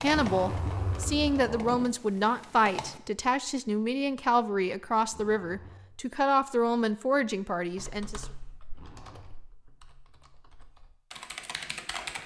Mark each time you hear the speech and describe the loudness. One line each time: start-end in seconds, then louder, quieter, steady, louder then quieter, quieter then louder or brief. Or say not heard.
0.0-8.2 steady.